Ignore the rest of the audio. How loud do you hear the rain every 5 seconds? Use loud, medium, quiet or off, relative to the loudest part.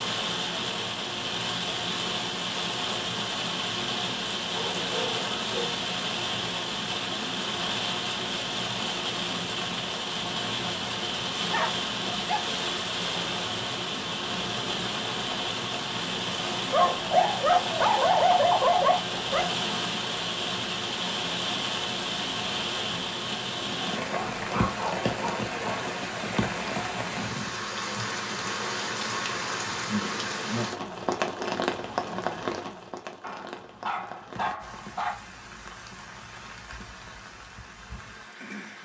loud, loud, loud, loud, loud, loud, loud, quiet.